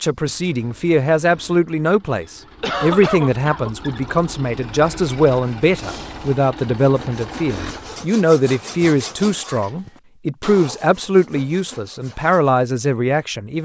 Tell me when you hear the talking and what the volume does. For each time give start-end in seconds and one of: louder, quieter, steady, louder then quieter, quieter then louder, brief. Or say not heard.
0.0-13.5 steady.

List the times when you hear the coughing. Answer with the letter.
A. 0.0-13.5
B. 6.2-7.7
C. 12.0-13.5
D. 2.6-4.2
D.